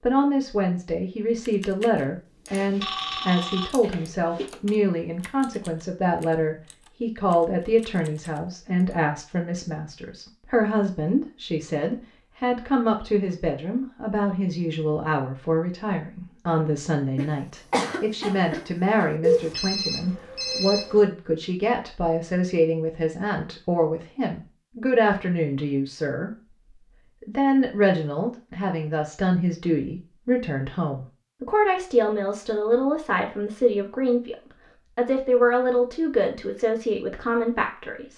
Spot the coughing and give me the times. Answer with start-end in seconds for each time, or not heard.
17.1-19.1.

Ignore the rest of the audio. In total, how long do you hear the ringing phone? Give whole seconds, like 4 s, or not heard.
4 s.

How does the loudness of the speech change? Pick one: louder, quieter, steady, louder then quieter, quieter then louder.
steady.